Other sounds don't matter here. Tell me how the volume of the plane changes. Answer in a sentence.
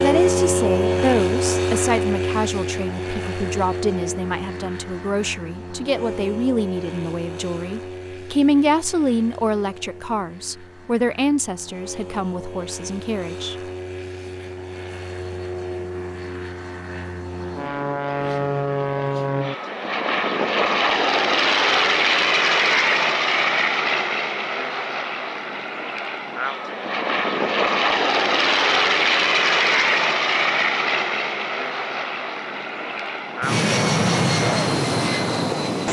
The volume of the plane goes down, then up.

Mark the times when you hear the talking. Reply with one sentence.
You can hear the talking from 0.0 to 13.6 s.